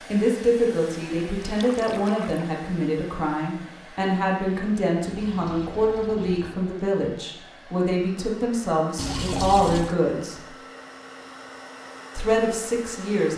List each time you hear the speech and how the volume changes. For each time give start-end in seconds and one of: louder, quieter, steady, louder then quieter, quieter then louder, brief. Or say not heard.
0.1-10.5 steady
12.2-13.3 brief.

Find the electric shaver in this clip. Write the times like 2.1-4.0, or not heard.
not heard.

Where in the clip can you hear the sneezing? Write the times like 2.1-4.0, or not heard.
not heard.